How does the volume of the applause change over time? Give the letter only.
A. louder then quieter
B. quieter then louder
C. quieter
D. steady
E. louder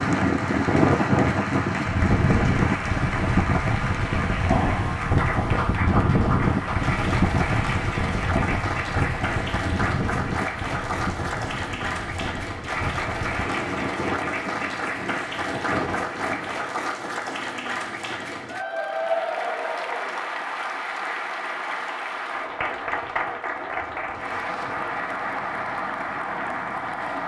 D.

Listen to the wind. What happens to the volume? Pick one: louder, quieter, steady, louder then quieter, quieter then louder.
quieter.